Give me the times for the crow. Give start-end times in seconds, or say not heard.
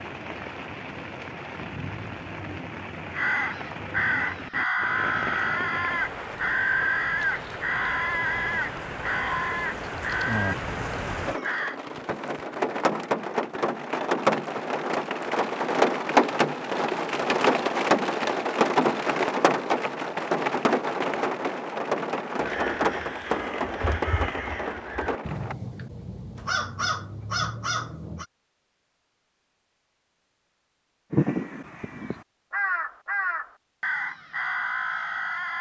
3.1-11.8, 22.4-28.2, 31.1-35.5.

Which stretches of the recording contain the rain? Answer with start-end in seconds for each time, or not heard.
0.0-25.6.